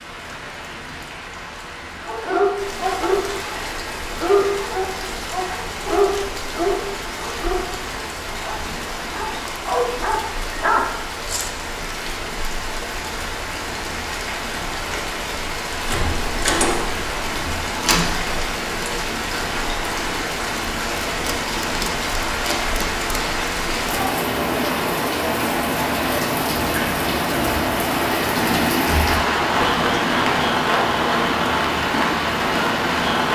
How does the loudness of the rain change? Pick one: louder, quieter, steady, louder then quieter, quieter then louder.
louder.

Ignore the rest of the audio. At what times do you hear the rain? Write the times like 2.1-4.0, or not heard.
0.0-33.3.